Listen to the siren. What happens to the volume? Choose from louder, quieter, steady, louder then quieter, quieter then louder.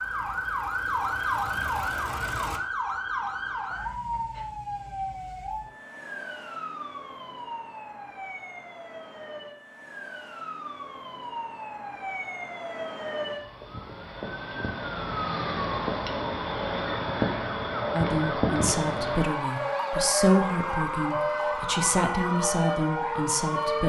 quieter then louder.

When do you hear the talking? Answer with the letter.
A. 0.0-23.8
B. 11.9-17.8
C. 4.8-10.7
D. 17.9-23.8
D.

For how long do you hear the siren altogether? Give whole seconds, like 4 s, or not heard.
24 s.